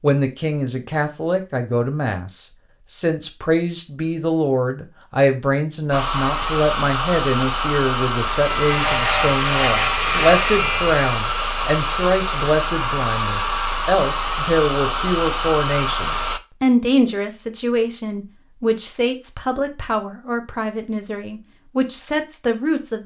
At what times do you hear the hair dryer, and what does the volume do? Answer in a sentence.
The hair dryer can be heard from 5.9 to 16.4 s, at a steady volume.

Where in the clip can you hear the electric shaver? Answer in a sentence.
You can hear the electric shaver from 8.4 to 11.1 s.